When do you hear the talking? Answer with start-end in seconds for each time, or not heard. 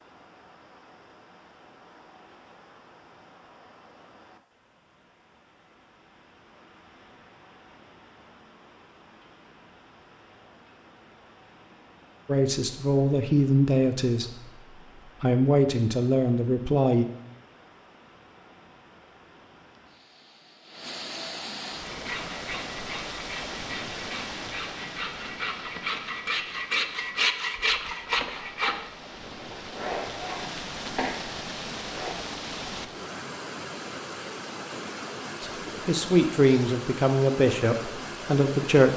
12.2-14.2, 15.2-17.1, 35.4-38.9.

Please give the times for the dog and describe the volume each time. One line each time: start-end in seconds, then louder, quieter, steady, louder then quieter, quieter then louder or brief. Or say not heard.
not heard.